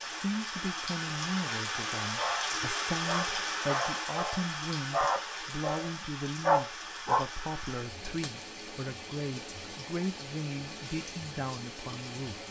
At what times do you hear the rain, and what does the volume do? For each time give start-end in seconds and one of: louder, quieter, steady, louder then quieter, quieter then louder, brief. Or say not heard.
0.0-12.4 quieter.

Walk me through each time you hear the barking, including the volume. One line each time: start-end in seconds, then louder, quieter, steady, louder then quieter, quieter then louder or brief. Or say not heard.
2.0-7.2 louder.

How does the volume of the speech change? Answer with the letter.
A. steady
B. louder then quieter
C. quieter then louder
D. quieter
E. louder
A.